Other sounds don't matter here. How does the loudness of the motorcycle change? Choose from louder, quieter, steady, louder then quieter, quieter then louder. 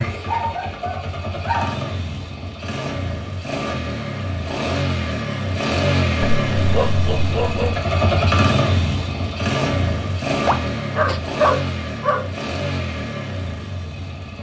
louder then quieter.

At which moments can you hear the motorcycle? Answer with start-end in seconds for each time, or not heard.
0.0-14.3.